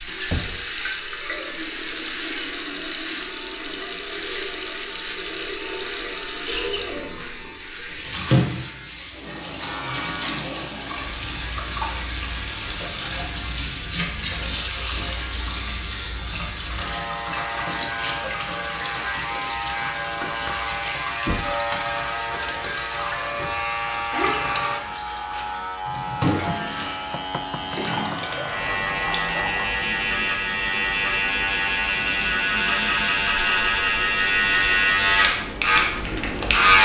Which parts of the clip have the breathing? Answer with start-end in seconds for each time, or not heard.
not heard.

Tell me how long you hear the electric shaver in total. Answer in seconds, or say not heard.
37 s.